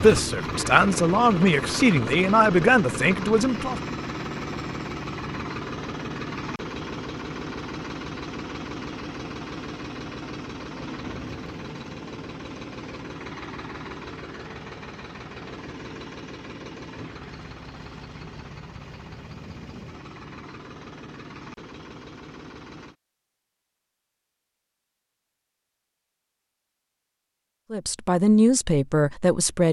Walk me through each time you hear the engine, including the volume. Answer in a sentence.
You can hear the engine from 0.0 to 22.9 s, getting quieter.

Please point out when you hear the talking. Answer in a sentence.
The talking can be heard from 0.0 to 3.8 s and from 27.7 to 29.6 s.